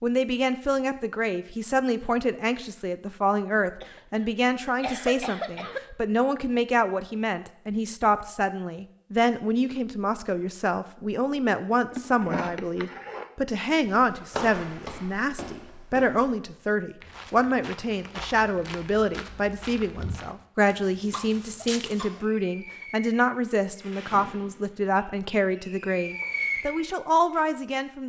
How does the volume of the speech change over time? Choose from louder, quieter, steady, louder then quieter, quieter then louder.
steady.